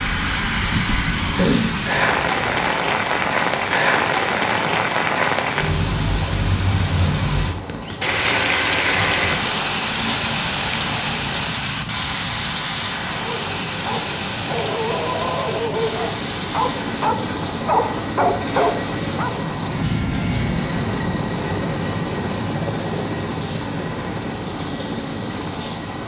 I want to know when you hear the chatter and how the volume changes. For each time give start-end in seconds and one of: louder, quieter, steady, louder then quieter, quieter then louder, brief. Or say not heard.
not heard.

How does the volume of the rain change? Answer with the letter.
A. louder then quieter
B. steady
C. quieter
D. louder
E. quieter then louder
C.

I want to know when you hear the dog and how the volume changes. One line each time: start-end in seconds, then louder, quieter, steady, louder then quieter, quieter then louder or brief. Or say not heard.
13.1-19.4 louder.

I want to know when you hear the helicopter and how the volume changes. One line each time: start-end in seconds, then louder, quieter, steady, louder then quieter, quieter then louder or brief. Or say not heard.
0.0-26.0 louder.